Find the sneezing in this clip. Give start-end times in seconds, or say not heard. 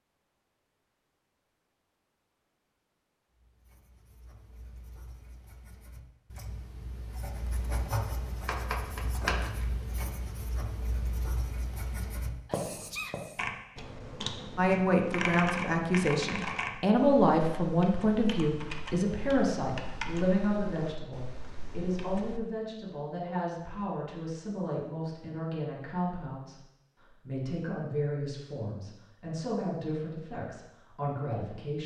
12.4-13.2.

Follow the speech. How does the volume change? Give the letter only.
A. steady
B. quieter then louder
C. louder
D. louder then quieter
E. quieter
E.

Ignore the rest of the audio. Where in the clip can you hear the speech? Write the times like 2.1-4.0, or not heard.
14.6-31.8.